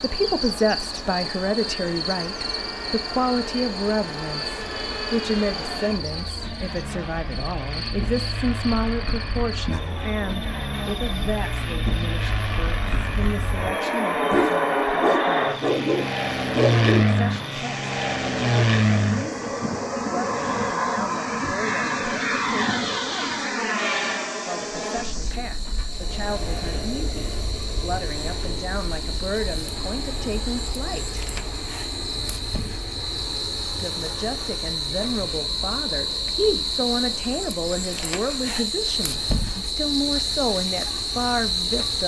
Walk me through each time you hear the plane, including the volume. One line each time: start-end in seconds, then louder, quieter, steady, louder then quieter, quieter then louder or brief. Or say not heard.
0.0-42.0 louder then quieter.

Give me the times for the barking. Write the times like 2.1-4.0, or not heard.
14.3-17.1.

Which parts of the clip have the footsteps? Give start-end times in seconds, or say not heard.
not heard.